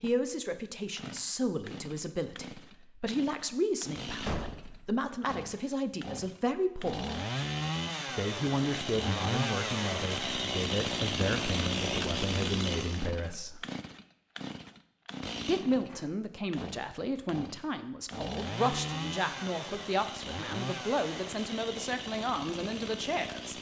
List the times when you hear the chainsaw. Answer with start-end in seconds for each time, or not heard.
0.0-23.5.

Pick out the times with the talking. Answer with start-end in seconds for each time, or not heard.
0.0-7.1, 8.2-13.7, 15.4-23.5.